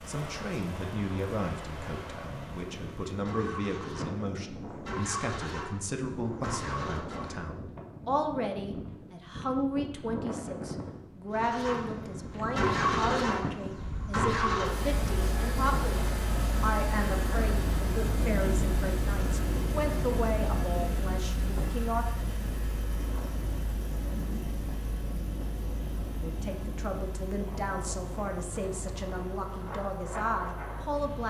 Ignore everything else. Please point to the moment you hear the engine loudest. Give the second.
13 s.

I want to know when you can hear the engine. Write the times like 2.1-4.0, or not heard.
0.0-7.5, 11.3-31.2.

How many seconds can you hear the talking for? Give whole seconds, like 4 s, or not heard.
27 s.